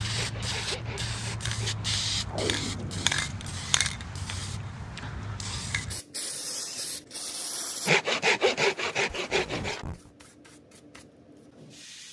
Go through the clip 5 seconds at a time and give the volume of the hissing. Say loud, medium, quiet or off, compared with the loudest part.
loud, medium, quiet.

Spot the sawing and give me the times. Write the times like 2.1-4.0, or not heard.
0.1-1.9, 7.8-9.8.